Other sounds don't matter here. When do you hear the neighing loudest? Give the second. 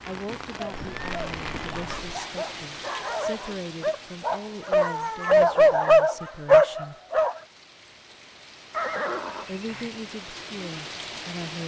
9 s.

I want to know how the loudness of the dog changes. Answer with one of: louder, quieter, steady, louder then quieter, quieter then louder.
louder.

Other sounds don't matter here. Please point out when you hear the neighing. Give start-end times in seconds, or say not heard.
0.7-2.2, 8.7-9.9.